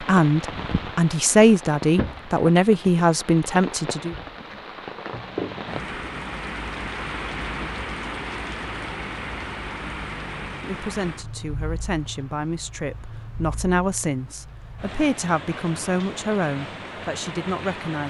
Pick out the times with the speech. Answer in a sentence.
You can hear the speech from 0.0 to 4.2 s and from 10.6 to 18.0 s.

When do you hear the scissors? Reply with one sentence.
The scissors can't be heard in this clip.